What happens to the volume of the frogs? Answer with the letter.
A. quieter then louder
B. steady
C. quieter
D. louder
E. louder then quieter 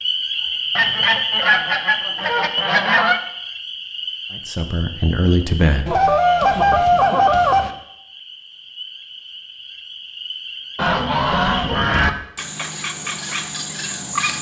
A.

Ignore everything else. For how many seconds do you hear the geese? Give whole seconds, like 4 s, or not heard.
6 s.